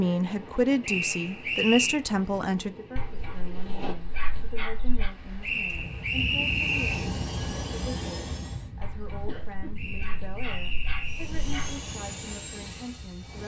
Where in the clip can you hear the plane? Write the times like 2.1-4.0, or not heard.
6.3-8.7, 11.0-13.4.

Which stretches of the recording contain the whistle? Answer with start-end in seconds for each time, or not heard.
0.8-2.0, 5.4-7.0, 9.8-11.3.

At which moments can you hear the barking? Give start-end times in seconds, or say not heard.
3.0-5.1, 8.8-11.8.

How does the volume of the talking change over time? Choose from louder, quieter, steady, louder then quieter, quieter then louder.
quieter.